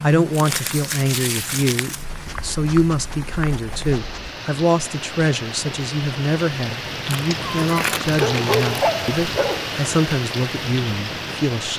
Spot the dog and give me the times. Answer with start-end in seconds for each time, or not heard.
1.9-4.3, 7.3-9.8.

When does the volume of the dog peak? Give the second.
9 s.